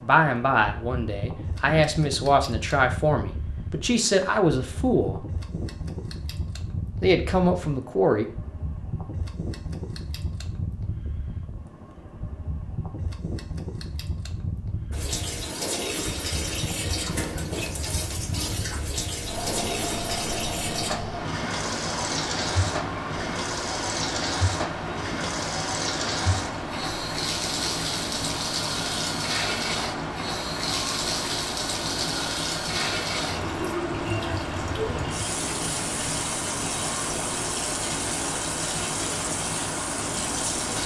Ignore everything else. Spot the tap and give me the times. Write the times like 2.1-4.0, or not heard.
14.9-40.8.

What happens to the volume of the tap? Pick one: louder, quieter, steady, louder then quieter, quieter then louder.
steady.